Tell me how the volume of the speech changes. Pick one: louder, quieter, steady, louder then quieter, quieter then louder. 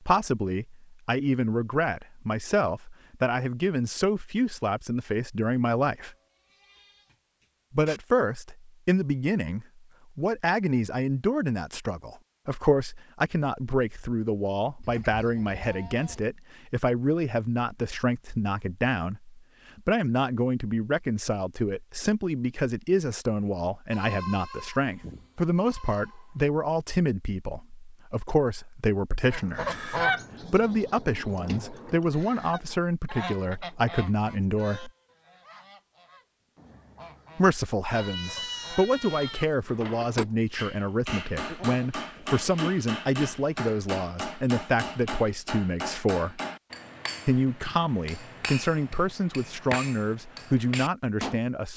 steady.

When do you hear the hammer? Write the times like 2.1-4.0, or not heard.
39.6-51.4.